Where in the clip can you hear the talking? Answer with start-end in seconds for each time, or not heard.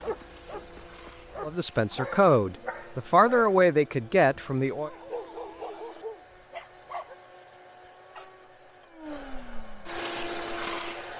1.4-4.9.